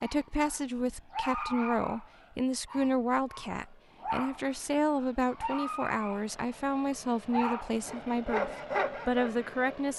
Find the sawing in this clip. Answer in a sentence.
You can hear the sawing from 7.8 to 9.8 s.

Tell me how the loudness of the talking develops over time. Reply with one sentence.
The loudness of the talking stays about the same.